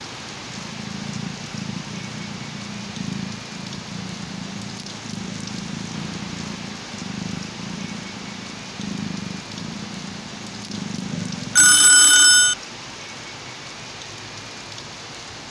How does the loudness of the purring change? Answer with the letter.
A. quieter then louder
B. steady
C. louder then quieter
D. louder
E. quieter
B.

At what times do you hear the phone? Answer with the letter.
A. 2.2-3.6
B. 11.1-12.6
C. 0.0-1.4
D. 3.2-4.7
B.